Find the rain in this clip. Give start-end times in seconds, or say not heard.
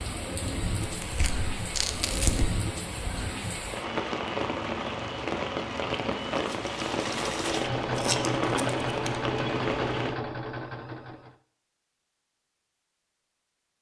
0.0-10.2.